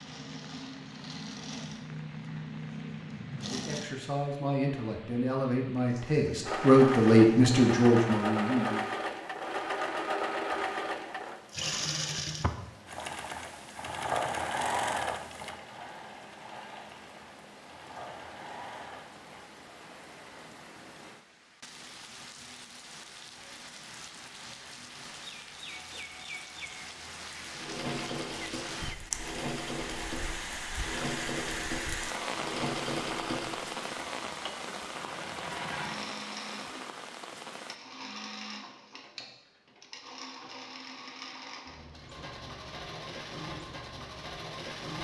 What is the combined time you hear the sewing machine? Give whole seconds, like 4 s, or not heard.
34 s.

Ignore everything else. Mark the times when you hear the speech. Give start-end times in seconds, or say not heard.
3.4-8.8.